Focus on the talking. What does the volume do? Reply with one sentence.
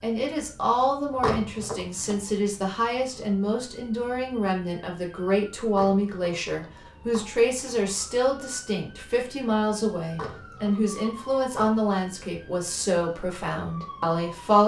The loudness of the talking stays about the same.